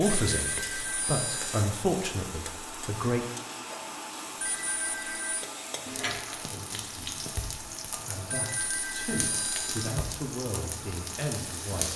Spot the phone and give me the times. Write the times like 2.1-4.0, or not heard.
0.1-1.6, 4.4-5.5, 8.3-9.9.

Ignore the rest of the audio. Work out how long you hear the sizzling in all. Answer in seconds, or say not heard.
12 s.